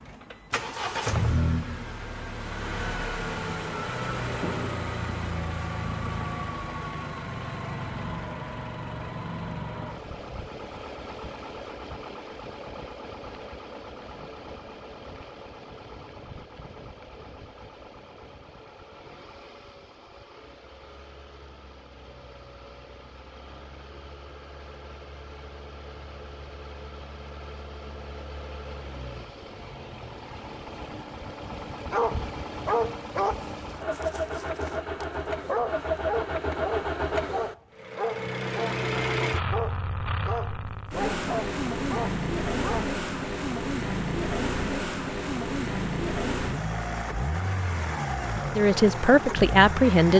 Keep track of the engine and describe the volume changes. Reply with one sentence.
The loudness of the engine goes down, then up.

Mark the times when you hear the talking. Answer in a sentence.
The talking can be heard from 48.5 to 50.1 s.